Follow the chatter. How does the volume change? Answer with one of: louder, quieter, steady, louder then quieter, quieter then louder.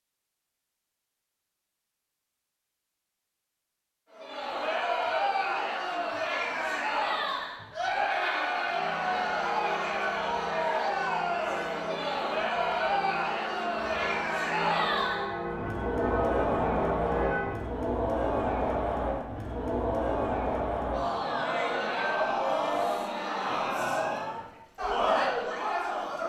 steady.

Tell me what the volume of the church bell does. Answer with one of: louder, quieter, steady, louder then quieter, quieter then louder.
louder.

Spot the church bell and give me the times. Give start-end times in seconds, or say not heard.
8.5-17.6.